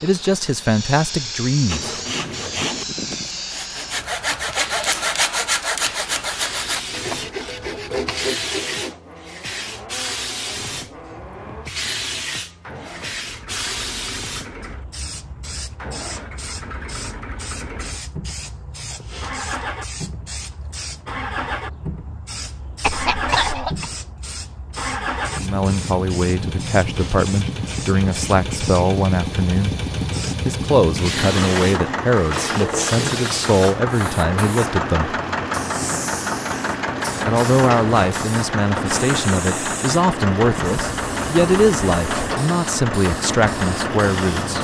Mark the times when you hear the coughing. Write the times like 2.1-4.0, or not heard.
22.8-23.9.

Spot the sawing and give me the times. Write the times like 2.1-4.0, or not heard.
1.6-8.9.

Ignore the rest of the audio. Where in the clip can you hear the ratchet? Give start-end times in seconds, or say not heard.
not heard.